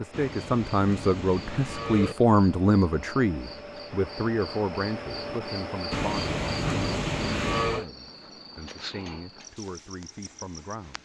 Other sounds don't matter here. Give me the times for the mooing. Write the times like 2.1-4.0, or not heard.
0.1-2.1, 5.9-7.8.